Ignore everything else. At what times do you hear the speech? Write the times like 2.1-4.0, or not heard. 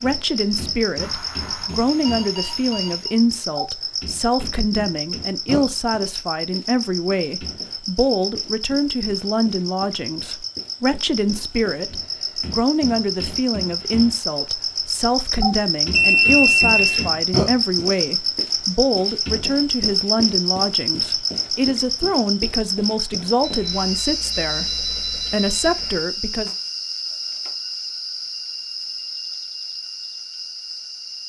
0.0-26.5.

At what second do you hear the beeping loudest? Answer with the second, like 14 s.
16 s.